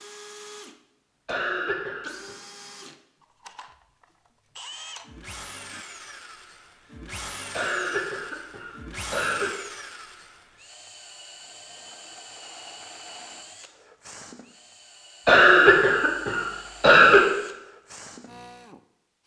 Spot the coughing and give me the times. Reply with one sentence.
You can hear the coughing from 1.2 to 2.4 s, from 7.5 to 9.5 s and from 15.2 to 17.2 s.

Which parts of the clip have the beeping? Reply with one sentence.
The beeping can't be heard in this clip.